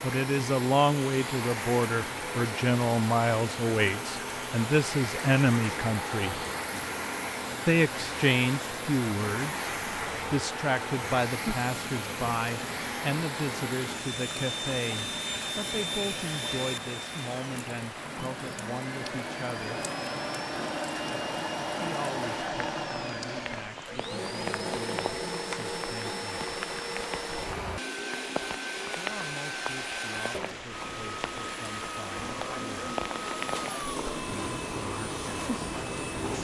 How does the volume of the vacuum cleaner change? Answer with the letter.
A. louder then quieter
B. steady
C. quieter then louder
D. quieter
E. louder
B.